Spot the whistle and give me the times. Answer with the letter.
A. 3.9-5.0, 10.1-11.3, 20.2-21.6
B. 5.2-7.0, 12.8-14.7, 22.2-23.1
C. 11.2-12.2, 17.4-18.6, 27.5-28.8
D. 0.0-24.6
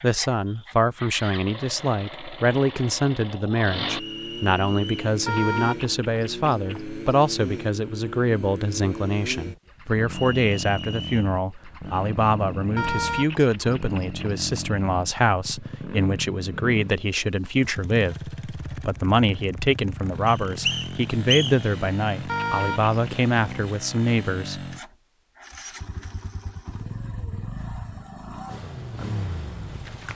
A.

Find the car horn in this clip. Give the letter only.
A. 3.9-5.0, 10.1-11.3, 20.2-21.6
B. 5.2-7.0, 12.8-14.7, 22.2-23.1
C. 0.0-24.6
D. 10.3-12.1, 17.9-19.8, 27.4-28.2
B.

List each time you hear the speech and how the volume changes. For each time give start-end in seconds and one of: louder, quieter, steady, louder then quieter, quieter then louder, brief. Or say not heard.
0.0-24.6 steady.